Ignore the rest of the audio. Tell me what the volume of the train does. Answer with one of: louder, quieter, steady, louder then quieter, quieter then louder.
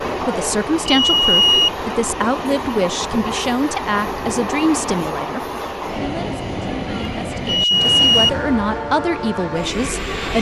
steady.